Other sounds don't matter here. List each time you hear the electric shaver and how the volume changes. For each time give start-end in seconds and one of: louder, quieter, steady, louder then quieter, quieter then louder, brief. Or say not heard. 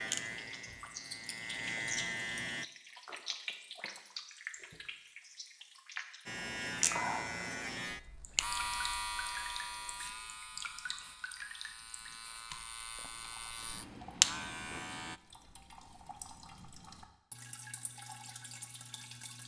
0.0-2.6 brief
6.2-15.2 quieter then louder.